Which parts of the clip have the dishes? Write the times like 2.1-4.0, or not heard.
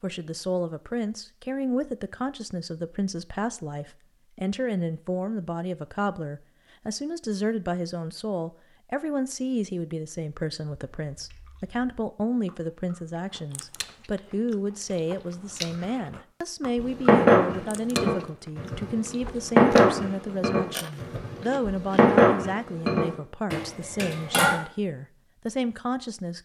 16.8-24.6.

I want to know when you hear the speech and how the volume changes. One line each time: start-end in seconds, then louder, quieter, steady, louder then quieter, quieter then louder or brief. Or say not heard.
0.0-26.3 steady.